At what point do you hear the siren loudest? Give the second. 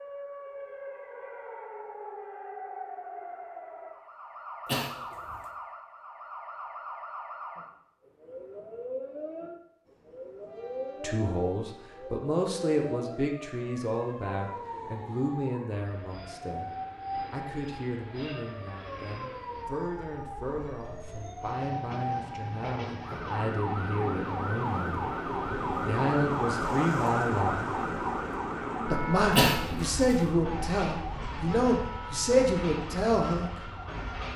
27 s.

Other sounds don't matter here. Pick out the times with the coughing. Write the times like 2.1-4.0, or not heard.
4.7-5.4, 29.4-29.9.